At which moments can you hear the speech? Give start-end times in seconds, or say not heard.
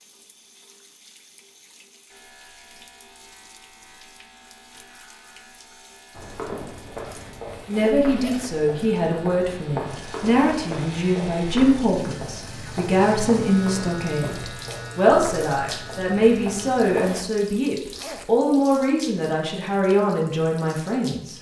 7.7-21.3.